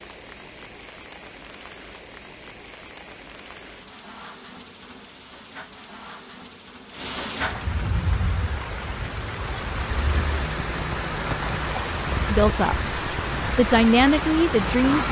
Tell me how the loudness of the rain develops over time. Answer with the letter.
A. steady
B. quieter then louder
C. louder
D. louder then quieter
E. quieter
C.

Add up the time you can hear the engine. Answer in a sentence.
The engine can be heard for 5 seconds in total.